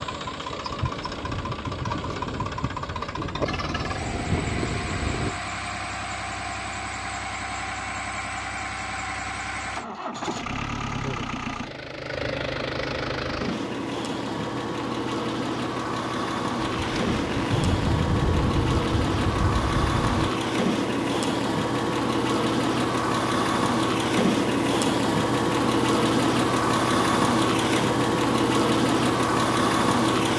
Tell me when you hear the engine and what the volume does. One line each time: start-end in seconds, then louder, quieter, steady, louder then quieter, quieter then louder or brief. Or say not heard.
0.0-30.3 louder.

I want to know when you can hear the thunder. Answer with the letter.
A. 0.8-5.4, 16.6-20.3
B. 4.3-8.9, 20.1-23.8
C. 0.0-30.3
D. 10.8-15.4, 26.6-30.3
A.